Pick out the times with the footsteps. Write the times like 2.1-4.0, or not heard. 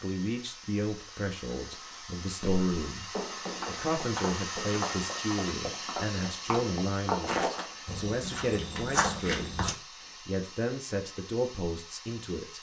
2.4-9.8.